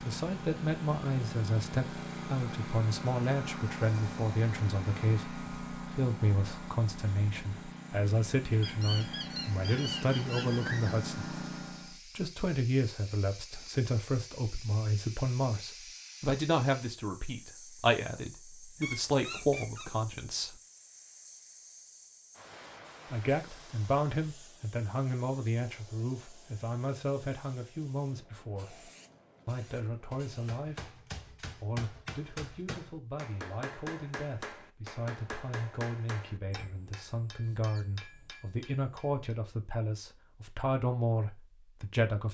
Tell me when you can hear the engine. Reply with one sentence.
The engine can be heard from 0.0 to 12.0 s.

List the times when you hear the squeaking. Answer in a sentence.
The squeaking can be heard from 8.6 to 11.0 s, from 18.8 to 20.1 s and from 37.4 to 37.9 s.